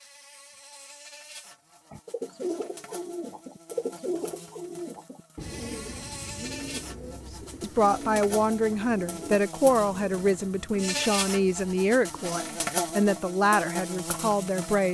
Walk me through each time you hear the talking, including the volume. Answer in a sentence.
The talking can be heard from 7.0 to 14.8 s, at a steady volume.